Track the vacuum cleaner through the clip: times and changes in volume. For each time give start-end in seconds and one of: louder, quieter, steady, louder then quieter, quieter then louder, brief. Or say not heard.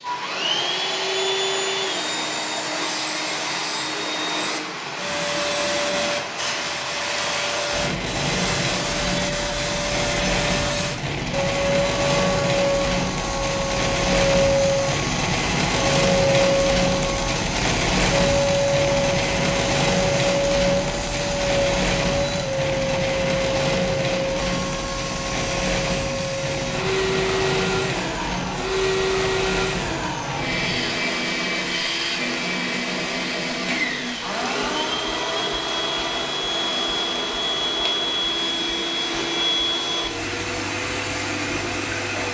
0.0-42.3 steady.